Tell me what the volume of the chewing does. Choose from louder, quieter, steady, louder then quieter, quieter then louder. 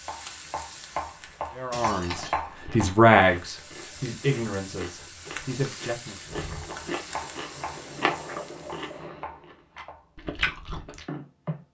louder.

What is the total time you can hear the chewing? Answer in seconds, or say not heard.
9 s.